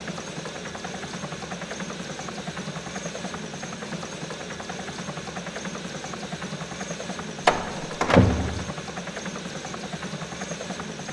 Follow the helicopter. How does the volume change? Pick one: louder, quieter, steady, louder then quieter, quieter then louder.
steady.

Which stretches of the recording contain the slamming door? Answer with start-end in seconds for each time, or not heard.
7.5-8.7.